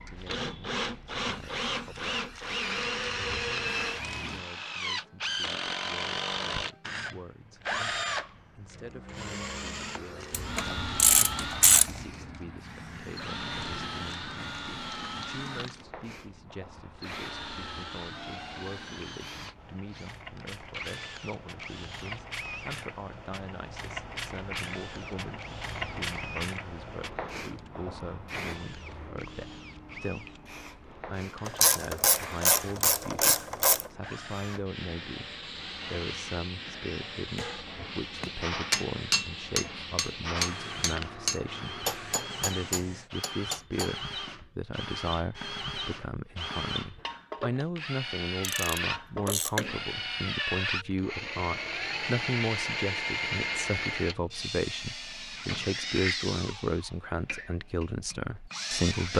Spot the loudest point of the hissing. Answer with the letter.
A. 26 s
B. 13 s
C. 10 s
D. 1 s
A.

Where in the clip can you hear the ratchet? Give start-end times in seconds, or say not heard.
10.3-12.1, 31.4-33.9, 48.4-50.3.